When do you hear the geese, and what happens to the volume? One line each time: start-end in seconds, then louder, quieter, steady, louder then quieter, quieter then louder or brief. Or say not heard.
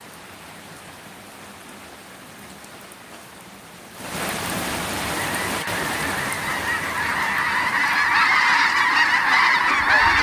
5.0-10.1 louder.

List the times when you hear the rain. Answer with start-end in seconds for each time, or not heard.
0.0-10.1.